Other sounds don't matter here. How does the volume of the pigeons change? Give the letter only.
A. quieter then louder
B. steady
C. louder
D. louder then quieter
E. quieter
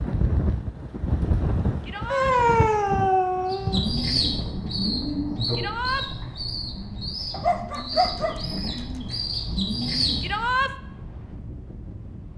A.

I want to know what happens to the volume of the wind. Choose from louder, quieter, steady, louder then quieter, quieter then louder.
quieter.